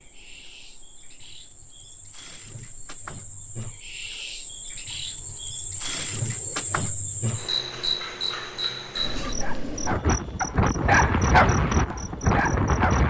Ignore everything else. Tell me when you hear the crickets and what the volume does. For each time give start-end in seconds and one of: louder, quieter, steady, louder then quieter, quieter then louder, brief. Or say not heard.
0.0-12.8 louder then quieter.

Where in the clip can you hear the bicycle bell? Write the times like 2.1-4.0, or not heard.
not heard.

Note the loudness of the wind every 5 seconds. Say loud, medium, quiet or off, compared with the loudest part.
quiet, quiet, loud.